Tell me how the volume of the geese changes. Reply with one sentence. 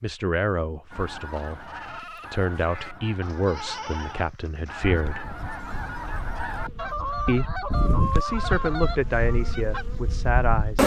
The loudness of the geese goes up.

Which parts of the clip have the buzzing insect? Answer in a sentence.
You can hear the buzzing insect from 4.8 to 10.8 s.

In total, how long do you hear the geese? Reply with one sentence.
You can hear the geese for 9 seconds altogether.